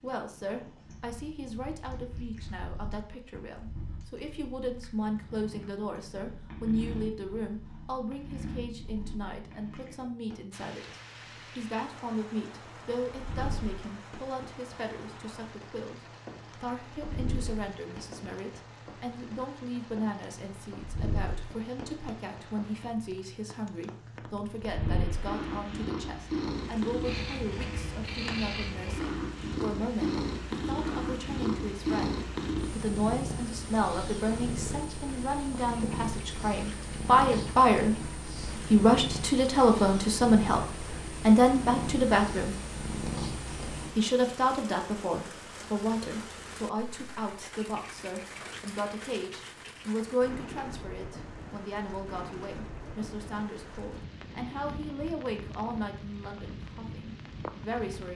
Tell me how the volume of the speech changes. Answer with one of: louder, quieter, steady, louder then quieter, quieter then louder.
louder then quieter.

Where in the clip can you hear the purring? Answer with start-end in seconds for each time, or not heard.
0.0-44.0.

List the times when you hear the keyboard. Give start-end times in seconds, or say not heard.
not heard.